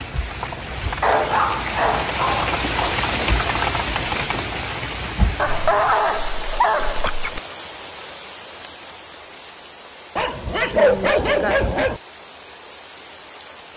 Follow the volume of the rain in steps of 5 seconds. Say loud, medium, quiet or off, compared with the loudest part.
loud, medium, quiet.